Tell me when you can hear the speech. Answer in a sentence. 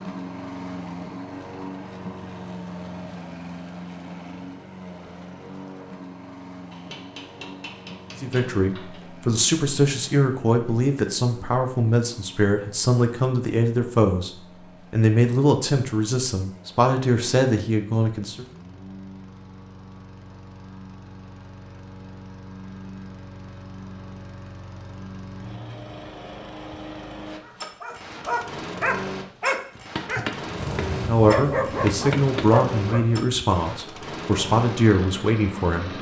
The speech can be heard from 8.2 to 18.4 s and from 30.9 to 35.9 s.